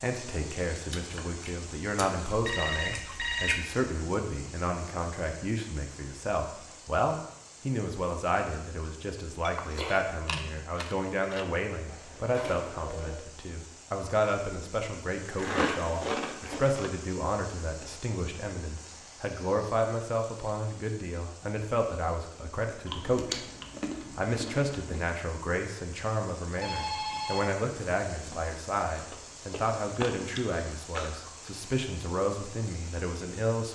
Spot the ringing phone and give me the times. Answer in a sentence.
The ringing phone can be heard from 2.5 to 3.5 s, from 11.8 to 13.2 s and from 26.6 to 28.6 s.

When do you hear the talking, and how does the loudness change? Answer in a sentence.
You can hear the talking from 0.0 to 23.4 s, at a steady volume; and from 24.1 to 33.7 s, at a steady volume.